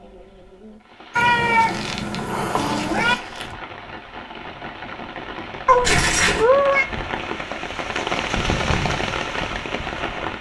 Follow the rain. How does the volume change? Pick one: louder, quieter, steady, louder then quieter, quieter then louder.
louder.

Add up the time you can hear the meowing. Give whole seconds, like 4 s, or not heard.
3 s.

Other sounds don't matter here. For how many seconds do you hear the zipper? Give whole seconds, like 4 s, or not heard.
3 s.